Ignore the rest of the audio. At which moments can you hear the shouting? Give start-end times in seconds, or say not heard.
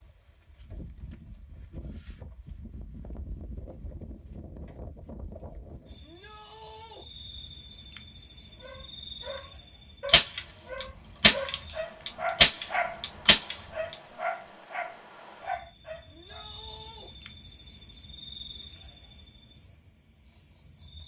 6.0-7.0, 16.1-17.1.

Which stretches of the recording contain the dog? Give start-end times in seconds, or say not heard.
8.6-13.0, 13.7-16.4.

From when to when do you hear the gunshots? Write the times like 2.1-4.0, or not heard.
10.1-13.9.